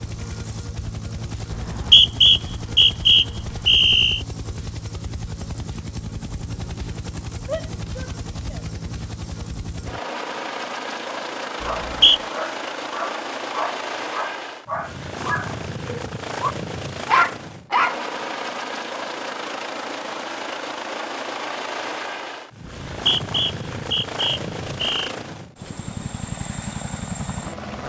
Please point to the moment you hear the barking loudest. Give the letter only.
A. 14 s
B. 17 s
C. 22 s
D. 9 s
B.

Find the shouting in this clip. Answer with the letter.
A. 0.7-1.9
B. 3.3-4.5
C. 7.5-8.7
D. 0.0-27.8
C.